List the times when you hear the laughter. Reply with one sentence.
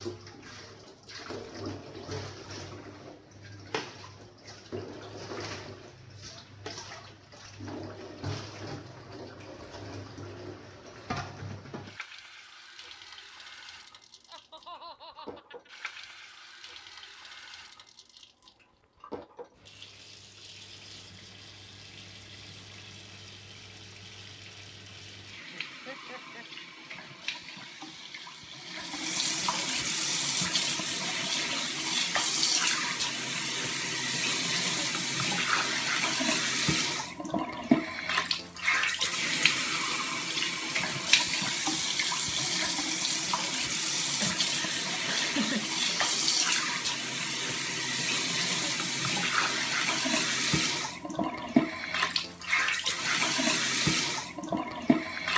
The laughter can be heard from 14.2 to 15.7 s, from 25.5 to 26.4 s and from 44.1 to 46.2 s.